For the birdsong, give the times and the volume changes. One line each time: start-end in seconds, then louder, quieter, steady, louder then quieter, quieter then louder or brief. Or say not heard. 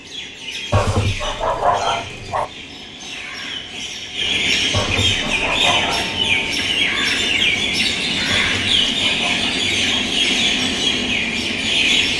0.0-12.1 louder.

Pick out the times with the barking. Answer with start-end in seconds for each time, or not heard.
0.7-2.5, 4.7-6.2, 8.2-10.1.